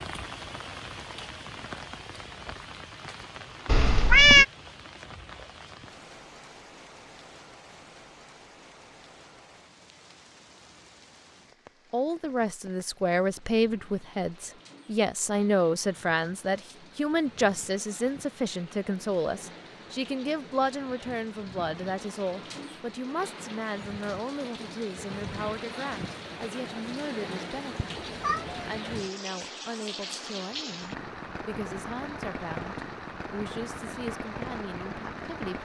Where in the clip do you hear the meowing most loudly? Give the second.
4 s.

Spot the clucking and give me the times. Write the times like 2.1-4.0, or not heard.
not heard.